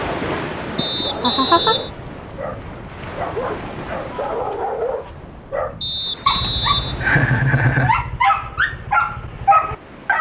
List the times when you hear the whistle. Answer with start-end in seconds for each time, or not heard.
0.8-1.9, 5.8-7.5.